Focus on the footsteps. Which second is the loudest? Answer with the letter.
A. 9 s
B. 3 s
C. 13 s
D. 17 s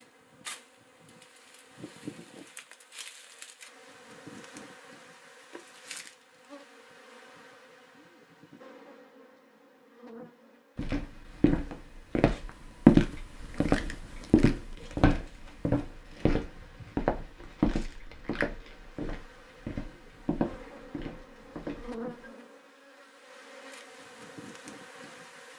C.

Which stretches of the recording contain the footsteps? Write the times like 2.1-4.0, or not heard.
10.8-22.3.